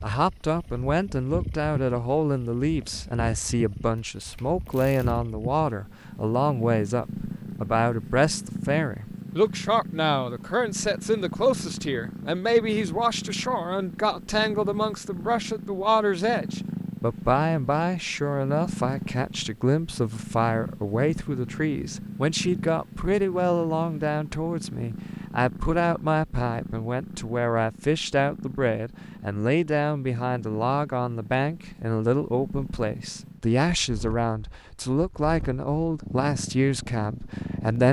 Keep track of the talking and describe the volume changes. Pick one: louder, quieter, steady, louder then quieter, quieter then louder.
steady.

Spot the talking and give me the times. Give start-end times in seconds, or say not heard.
0.0-37.8.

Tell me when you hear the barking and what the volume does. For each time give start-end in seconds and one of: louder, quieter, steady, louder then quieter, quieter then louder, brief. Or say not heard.
not heard.